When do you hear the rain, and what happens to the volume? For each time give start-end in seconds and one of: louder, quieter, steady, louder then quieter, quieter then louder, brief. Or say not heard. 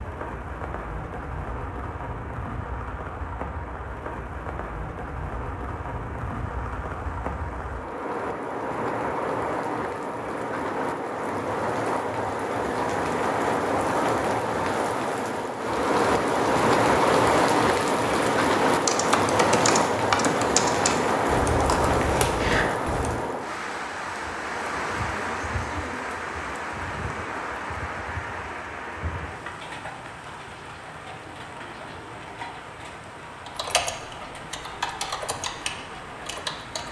0.0-36.8 louder then quieter.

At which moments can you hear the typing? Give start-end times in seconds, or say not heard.
18.8-23.2, 33.5-36.8.